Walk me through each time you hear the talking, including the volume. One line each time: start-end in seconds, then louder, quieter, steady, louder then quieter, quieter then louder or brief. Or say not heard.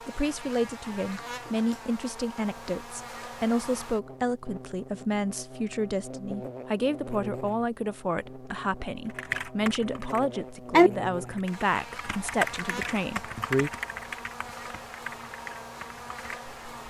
0.1-13.7 steady.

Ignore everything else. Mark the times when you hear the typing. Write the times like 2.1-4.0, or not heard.
9.1-16.8.